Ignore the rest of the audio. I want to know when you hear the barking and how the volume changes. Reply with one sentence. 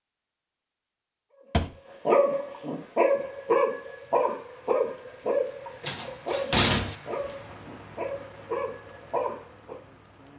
The barking can be heard from 1.3 to 9.8 s, getting quieter.